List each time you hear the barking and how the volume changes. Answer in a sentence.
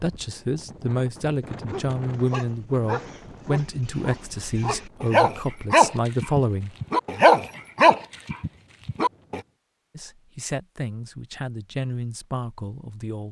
You can hear the barking from 1.6 to 9.4 s, getting louder.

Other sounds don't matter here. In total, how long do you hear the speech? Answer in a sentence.
You can hear the speech for 10 seconds altogether.